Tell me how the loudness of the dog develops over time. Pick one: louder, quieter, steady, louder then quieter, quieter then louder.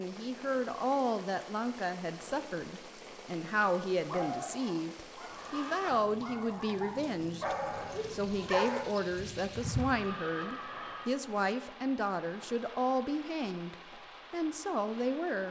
louder.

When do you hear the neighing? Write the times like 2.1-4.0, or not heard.
5.3-6.0, 9.9-11.2.